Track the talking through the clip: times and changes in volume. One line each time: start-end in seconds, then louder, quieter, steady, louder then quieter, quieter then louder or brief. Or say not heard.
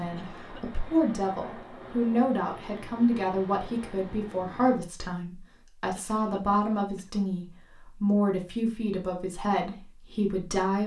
0.0-10.8 steady.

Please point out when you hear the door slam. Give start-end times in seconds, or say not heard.
not heard.